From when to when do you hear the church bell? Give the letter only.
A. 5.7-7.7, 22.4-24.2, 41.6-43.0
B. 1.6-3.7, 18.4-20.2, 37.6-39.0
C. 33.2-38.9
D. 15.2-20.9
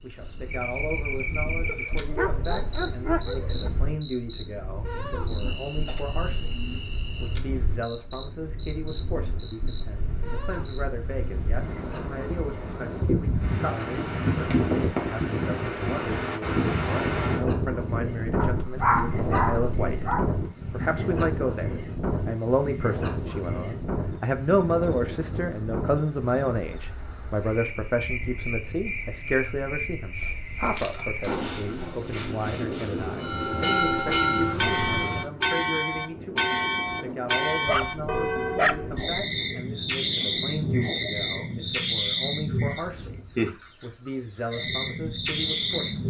C.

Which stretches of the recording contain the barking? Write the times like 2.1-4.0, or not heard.
1.6-3.7, 18.4-20.2, 37.6-39.0.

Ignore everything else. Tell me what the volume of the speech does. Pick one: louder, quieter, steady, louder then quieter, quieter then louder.
louder then quieter.